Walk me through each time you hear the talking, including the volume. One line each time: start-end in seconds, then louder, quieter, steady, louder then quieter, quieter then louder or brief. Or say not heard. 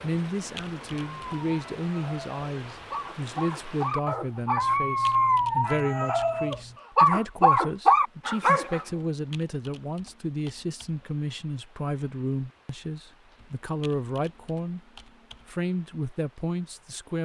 0.0-17.2 steady.